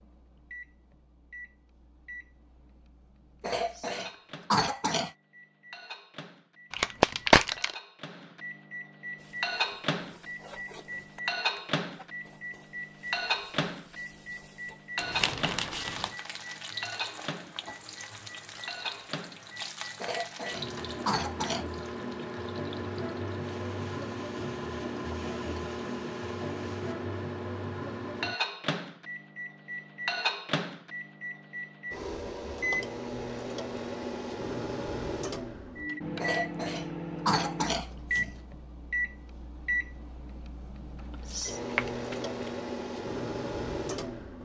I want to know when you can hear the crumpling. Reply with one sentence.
You can hear the crumpling from 6.7 to 7.8 s, from 14.9 to 16.1 s and from 41.4 to 42.5 s.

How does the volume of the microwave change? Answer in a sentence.
The volume of the microwave goes up.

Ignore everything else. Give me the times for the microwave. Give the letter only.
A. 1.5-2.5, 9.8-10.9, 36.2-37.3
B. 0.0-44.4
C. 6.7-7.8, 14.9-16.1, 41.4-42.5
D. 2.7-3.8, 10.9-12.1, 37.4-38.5
B.